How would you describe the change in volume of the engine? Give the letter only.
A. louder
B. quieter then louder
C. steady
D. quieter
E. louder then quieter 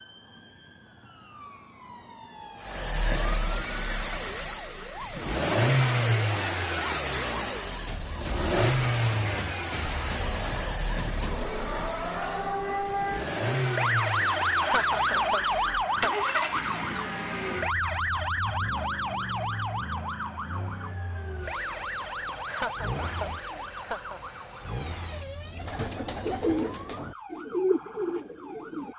D.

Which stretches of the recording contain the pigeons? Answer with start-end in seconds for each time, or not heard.
25.5-28.9.